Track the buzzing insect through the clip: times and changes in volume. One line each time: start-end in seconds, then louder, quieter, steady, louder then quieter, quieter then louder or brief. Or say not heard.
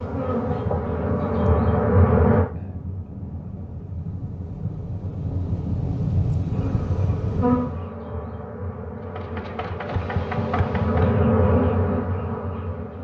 0.0-2.5 brief
6.5-12.9 quieter then louder.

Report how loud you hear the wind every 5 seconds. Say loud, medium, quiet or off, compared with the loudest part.
medium, loud, off.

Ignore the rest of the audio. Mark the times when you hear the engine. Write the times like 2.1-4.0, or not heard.
9.1-11.2.